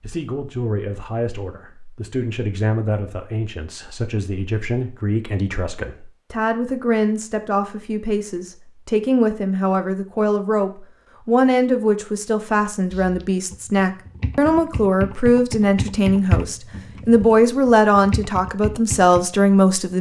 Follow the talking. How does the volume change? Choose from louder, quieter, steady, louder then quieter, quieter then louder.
louder.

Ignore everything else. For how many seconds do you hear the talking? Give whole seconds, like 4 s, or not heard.
20 s.